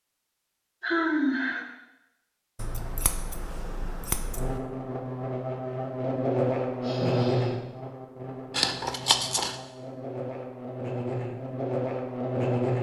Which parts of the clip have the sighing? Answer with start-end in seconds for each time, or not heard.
0.8-1.6, 6.8-7.5.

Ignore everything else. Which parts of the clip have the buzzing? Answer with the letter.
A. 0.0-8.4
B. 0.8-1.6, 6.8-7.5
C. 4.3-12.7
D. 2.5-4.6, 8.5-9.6
C.